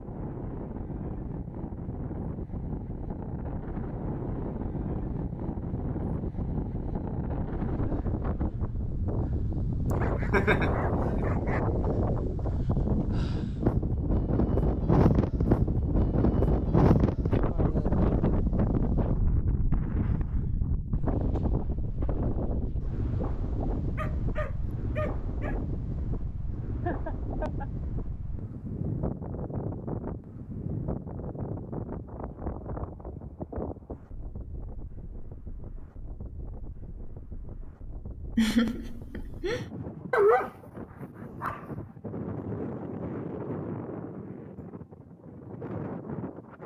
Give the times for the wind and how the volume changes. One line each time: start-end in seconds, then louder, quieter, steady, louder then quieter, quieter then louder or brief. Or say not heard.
0.0-46.6 louder then quieter.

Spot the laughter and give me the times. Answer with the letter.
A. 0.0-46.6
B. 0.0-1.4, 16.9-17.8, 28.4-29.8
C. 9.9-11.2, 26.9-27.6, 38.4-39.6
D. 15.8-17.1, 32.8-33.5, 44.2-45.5
C.